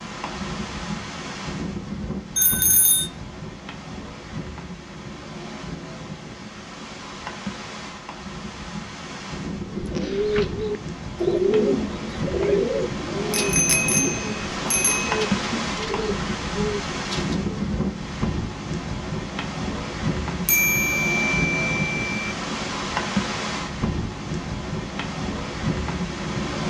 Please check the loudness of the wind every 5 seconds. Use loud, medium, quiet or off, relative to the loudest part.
medium, medium, loud, loud, loud, loud.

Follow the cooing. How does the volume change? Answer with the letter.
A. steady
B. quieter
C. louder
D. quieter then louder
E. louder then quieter
B.